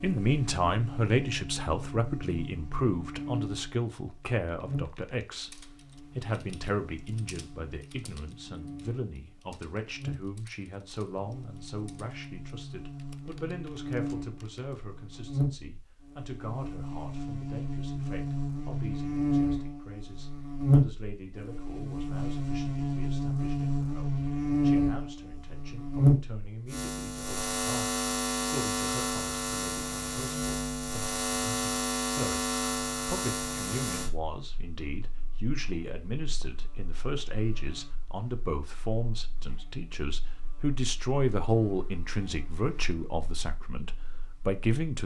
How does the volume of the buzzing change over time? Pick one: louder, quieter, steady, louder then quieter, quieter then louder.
louder then quieter.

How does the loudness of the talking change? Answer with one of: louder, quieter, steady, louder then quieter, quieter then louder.
quieter then louder.